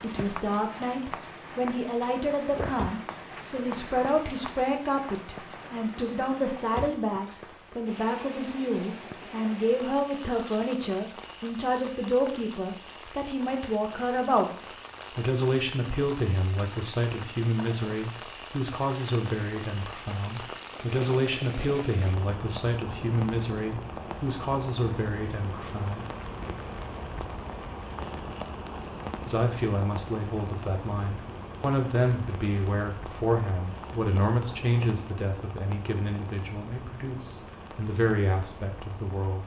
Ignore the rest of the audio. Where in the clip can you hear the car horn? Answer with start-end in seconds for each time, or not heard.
not heard.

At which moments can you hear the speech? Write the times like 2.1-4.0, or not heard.
0.0-14.5, 15.2-26.1, 29.2-39.4.